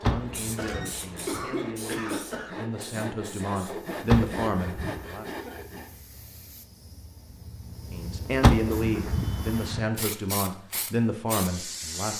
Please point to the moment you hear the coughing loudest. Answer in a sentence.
The volume of the coughing peaks at 1 second.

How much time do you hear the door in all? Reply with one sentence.
You can hear the door for 4 seconds altogether.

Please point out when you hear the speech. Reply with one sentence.
You can hear the speech from 0.0 to 5.2 s and from 7.9 to 12.1 s.